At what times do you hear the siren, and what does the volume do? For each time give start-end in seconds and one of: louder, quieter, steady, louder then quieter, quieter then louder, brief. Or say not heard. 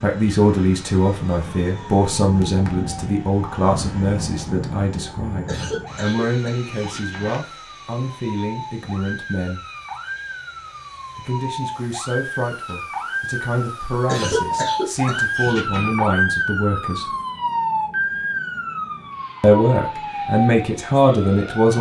0.0-21.7 louder.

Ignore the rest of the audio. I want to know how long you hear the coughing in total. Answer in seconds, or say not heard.
4 s.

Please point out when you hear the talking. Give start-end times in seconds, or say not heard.
0.0-9.7, 11.2-17.1, 19.4-21.7.